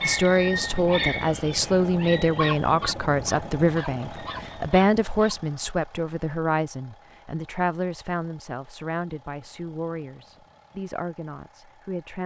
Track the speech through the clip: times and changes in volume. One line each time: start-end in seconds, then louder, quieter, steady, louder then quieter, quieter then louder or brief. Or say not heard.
0.0-12.2 quieter.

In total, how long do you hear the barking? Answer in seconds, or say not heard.
5 s.